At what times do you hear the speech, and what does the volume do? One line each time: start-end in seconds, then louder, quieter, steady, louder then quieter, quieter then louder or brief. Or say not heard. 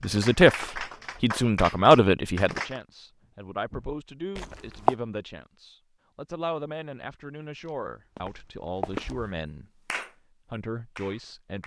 0.0-9.7 quieter
10.5-11.6 brief.